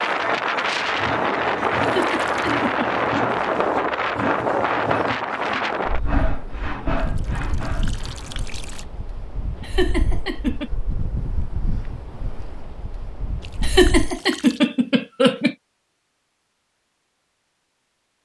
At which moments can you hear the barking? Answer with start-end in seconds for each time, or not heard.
not heard.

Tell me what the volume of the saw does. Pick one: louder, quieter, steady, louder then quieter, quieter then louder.
steady.